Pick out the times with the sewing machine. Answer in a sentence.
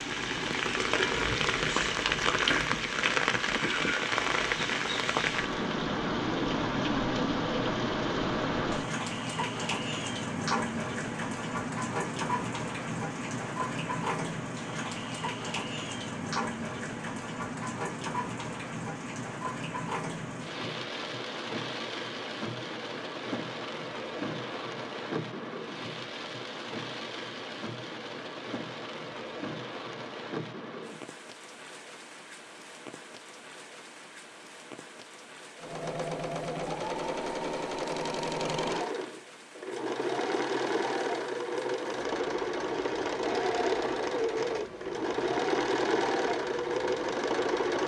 The sewing machine can be heard from 35.6 to 47.8 s.